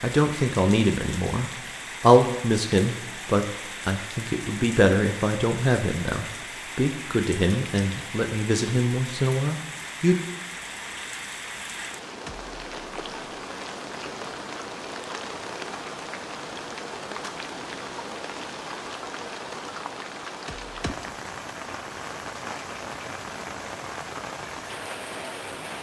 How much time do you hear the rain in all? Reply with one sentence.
You can hear the rain for 26 seconds altogether.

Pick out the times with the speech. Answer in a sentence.
The speech can be heard from 0.0 to 10.2 s.